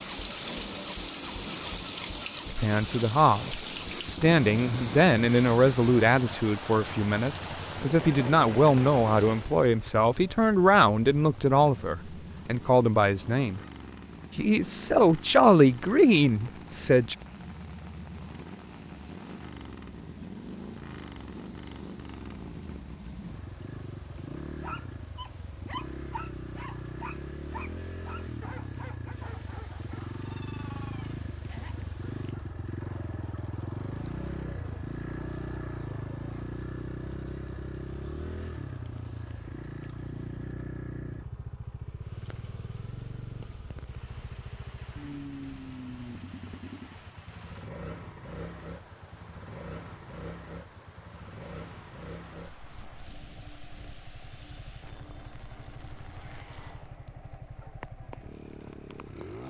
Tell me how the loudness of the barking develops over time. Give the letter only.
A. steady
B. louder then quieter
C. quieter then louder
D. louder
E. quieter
E.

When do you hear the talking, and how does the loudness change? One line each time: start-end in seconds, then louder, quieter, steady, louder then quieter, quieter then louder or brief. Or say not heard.
2.5-13.6 steady
14.3-17.1 brief.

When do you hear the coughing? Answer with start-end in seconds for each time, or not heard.
not heard.